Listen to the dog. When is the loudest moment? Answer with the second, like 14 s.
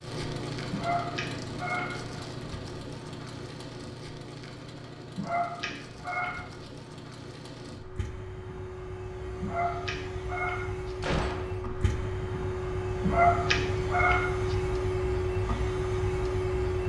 13 s.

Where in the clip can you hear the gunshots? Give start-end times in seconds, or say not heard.
11.0-11.6.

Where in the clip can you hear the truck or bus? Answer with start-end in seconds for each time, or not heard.
0.0-16.8.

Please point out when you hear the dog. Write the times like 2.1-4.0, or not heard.
0.7-2.0, 5.2-6.7, 9.4-10.9, 13.0-14.6.